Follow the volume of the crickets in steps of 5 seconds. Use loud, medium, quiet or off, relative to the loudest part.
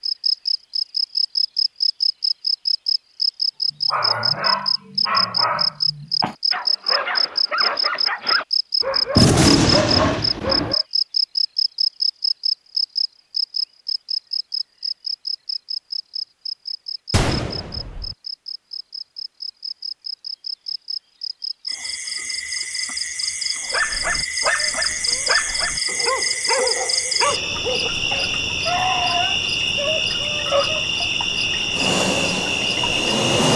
loud, loud, loud, medium, medium, loud, loud.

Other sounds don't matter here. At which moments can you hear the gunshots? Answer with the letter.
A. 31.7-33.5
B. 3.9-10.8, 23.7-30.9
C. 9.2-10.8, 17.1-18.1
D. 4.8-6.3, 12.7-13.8
C.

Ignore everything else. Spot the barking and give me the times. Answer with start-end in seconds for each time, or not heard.
3.9-10.8, 23.7-30.9.